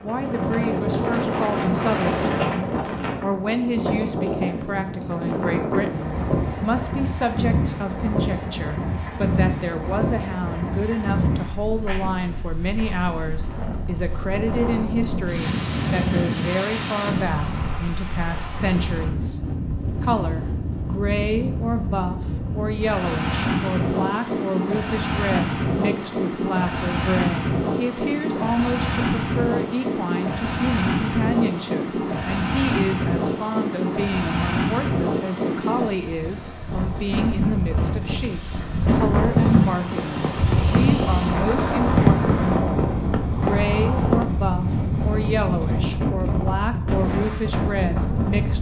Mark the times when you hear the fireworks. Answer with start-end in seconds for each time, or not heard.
39.1-44.2.